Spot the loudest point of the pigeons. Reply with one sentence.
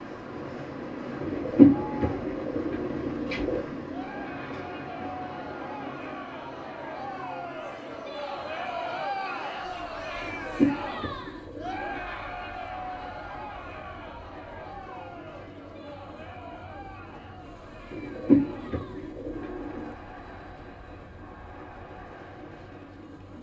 The loudest moment of the pigeons is at 2 seconds.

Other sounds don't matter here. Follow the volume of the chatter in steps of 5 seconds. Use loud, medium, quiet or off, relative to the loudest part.
medium, loud, loud, medium, quiet.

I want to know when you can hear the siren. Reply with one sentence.
The siren can't be heard in this clip.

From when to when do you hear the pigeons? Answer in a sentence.
You can hear the pigeons from 1.2 to 3.6 s, from 10.2 to 12.0 s and from 17.9 to 19.9 s.